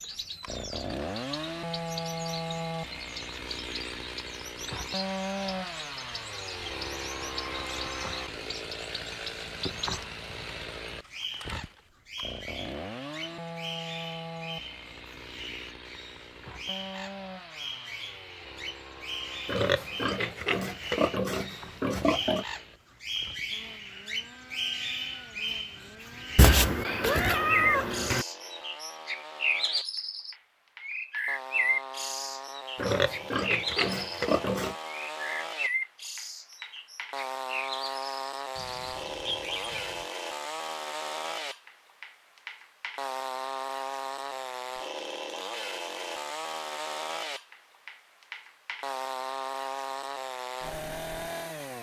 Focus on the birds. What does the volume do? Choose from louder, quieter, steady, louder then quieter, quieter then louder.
louder.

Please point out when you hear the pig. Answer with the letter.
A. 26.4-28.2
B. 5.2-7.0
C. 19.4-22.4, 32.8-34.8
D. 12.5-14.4
C.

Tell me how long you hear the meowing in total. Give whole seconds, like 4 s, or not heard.
2 s.